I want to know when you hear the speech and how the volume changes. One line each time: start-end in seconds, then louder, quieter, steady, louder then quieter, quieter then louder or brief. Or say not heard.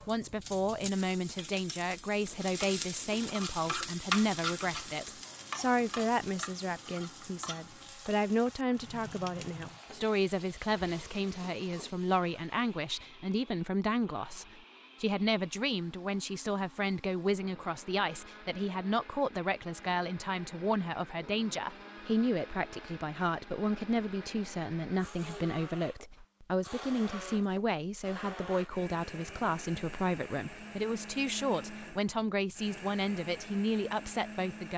0.1-34.7 steady.